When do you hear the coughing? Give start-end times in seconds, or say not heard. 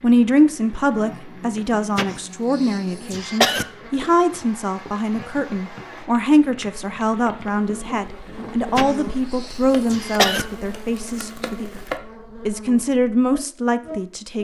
1.9-3.6, 8.8-10.4.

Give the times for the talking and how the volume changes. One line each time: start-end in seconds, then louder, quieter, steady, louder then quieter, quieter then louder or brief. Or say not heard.
0.0-11.8 steady
12.4-14.3 brief.